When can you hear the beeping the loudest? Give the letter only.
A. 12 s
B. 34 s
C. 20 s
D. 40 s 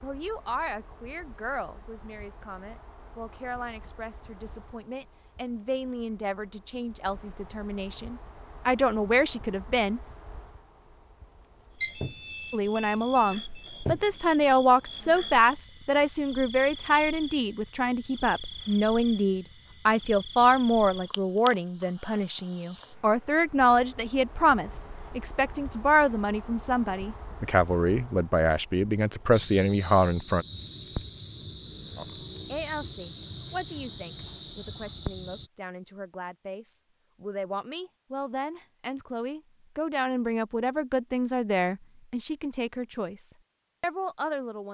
A.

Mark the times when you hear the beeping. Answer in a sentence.
You can hear the beeping from 11.8 to 13.7 s.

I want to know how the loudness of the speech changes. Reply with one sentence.
The volume of the speech goes up, then down.